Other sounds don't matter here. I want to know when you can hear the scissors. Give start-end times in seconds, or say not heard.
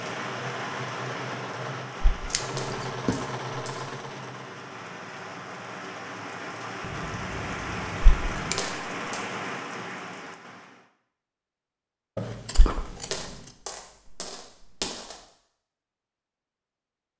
2.3-3.2, 6.8-8.6, 12.2-13.6.